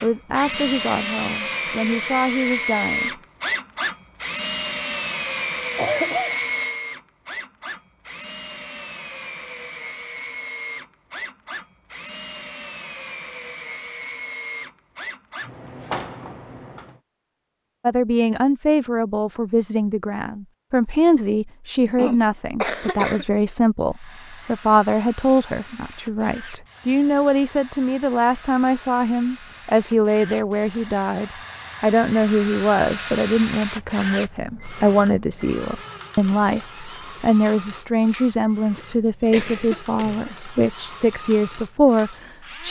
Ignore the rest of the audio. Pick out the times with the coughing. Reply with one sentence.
The coughing can be heard from 5.8 to 6.4 s, from 21.9 to 23.2 s and from 38.8 to 40.3 s.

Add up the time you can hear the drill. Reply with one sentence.
You can hear the drill for 36 seconds altogether.